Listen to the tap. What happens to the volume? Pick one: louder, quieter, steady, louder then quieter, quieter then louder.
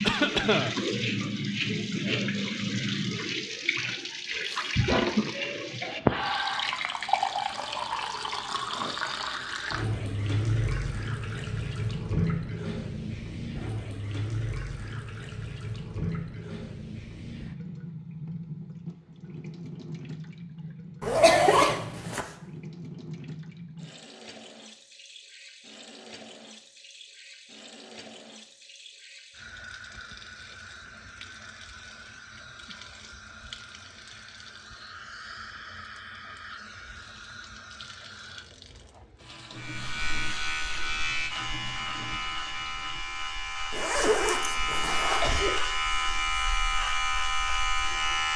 quieter.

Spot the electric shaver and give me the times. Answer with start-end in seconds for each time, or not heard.
39.5-48.3.